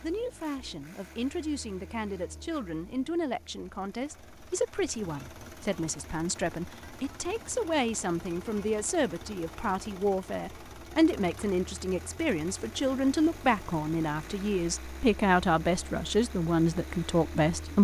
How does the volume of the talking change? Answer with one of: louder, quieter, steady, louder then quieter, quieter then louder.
louder.